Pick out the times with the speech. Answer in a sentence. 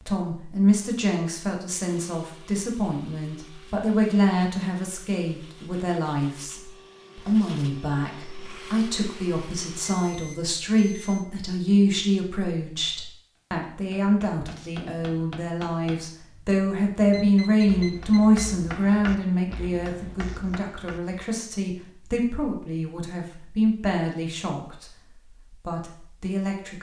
The speech can be heard from 0.1 to 26.7 s.